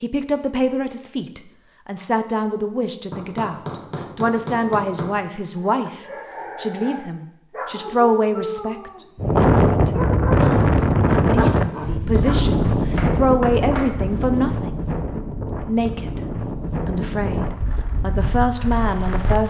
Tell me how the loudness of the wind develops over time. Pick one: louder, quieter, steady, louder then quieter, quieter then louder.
quieter.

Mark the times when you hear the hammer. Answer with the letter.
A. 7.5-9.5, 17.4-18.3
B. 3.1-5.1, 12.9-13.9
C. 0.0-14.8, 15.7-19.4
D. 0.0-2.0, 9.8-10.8
B.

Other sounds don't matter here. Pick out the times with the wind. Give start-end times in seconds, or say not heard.
9.2-19.4.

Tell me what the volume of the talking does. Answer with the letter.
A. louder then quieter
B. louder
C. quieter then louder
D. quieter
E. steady
E.